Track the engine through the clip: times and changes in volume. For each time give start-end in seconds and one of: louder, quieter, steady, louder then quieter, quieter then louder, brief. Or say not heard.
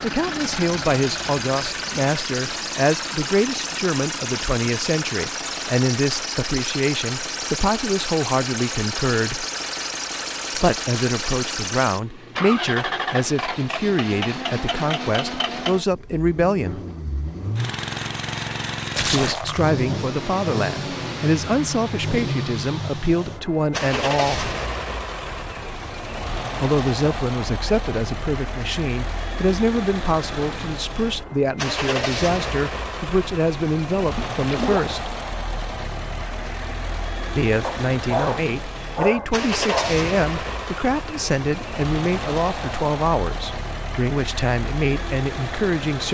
0.0-46.0 steady.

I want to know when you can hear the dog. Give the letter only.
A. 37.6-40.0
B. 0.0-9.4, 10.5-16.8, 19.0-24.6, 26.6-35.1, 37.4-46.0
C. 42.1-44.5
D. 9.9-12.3
A.